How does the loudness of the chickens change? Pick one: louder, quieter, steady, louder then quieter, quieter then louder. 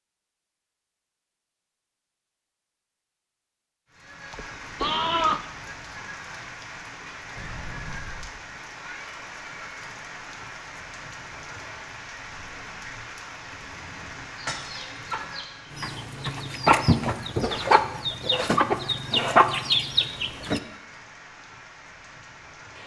louder.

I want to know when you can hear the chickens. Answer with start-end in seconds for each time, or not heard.
14.2-20.6.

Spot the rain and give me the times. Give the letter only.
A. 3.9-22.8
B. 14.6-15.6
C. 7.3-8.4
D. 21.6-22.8
A.